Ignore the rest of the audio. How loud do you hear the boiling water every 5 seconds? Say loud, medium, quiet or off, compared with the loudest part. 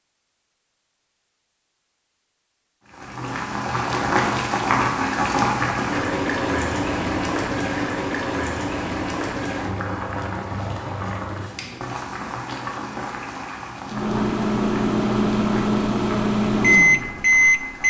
loud, loud, medium, quiet.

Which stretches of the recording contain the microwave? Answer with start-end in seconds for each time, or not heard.
13.8-17.8.